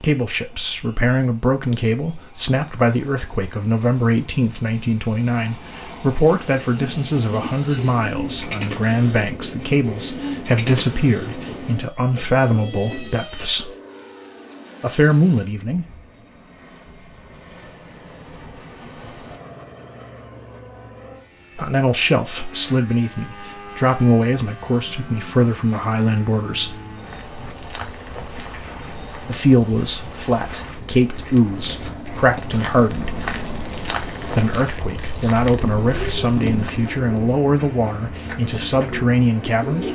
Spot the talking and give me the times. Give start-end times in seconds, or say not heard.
0.0-13.7, 14.8-15.8, 21.6-26.8, 29.2-33.2, 34.3-39.9.